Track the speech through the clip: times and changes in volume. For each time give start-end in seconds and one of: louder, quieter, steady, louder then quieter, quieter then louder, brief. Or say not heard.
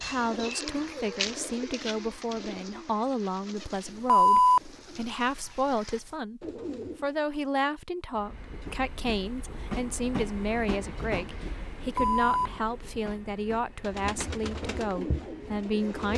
0.0-16.1 steady.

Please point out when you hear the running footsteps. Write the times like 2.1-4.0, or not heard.
not heard.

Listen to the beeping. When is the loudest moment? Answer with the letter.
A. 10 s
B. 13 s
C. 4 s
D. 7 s
C.